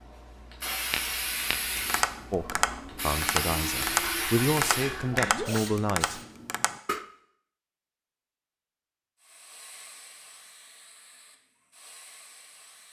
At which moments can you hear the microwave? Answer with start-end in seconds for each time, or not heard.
not heard.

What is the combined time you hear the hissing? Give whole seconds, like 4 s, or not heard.
10 s.